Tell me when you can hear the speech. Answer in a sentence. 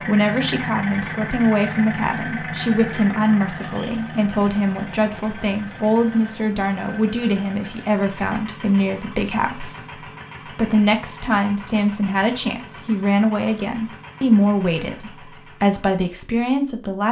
The speech can be heard from 0.1 to 17.0 s.